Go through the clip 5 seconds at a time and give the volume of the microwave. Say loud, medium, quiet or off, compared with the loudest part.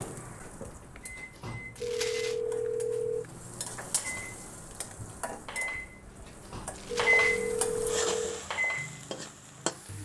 quiet, loud.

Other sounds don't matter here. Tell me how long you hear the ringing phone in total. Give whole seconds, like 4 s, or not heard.
5 s.